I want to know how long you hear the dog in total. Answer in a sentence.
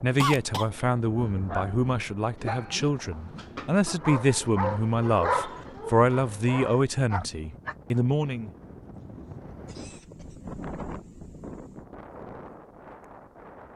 You can hear the dog for 7 seconds altogether.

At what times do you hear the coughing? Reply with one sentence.
The coughing can be heard from 0.2 to 0.7 s and from 9.7 to 10.3 s.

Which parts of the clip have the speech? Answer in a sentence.
You can hear the speech from 0.0 to 8.5 s.